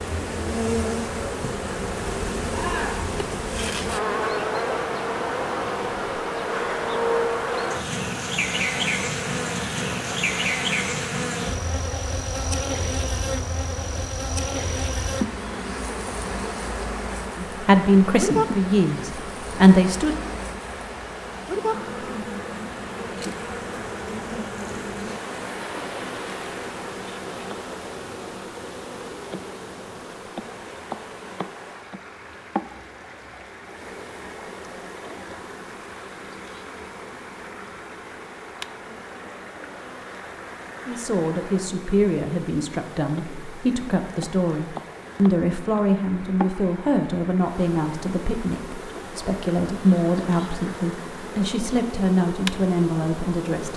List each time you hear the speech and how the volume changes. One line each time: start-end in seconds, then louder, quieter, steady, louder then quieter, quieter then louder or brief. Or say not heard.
17.4-20.2 brief
40.9-53.7 steady.